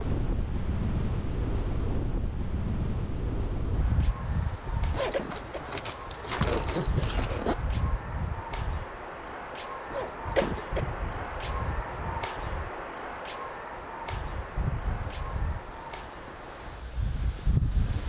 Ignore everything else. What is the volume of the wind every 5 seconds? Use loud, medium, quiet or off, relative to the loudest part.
loud, medium, medium, loud.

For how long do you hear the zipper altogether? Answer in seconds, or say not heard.
3 s.